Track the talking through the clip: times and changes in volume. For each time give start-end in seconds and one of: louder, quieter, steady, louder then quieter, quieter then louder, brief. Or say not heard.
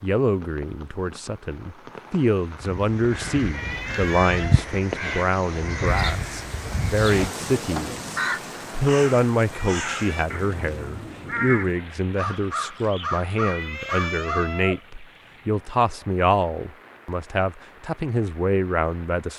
0.0-19.3 steady.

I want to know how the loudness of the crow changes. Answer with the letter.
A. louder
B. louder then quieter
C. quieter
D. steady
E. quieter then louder
D.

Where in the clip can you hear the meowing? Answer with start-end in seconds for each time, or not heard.
3.5-4.7, 9.5-10.3, 13.4-14.8.